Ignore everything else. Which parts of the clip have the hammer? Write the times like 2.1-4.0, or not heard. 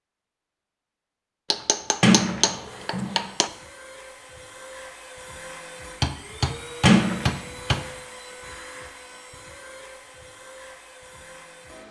1.5-3.5, 6.0-7.8.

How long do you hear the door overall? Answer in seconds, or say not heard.
2 s.